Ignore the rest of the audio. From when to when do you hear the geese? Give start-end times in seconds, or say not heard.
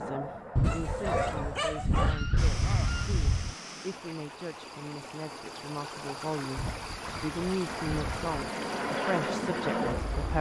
0.6-3.5, 6.5-8.3.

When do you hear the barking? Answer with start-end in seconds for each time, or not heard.
0.6-2.2.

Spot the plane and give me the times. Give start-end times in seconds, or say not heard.
0.0-1.6, 7.7-10.3.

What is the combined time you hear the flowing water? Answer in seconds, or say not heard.
8 s.